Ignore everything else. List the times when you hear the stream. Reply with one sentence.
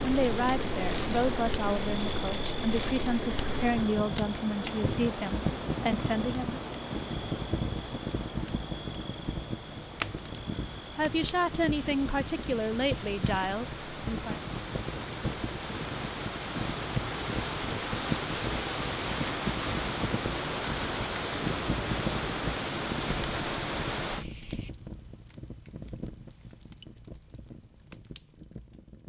You can hear the stream from 0.0 to 24.2 s.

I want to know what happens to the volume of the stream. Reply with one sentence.
The loudness of the stream goes down, then up.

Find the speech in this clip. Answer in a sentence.
The speech can be heard from 0.0 to 6.6 s and from 10.9 to 14.4 s.